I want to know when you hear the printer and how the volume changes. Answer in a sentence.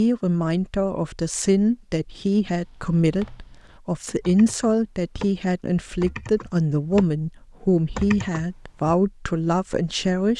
The printer can't be heard in this clip.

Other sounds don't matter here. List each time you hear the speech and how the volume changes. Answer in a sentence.
You can hear the speech from 0.0 to 10.3 s, at a steady volume.